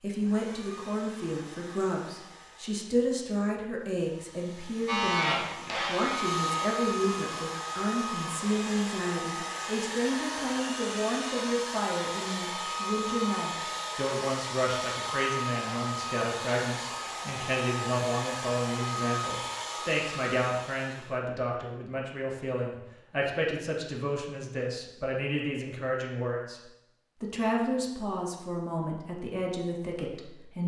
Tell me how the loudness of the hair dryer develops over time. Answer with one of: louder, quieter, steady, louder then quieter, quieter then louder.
louder.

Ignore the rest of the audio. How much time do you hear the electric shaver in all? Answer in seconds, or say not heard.
2 s.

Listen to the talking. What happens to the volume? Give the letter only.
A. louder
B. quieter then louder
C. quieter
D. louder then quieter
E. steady
E.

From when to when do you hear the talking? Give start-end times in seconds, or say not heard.
0.0-30.6.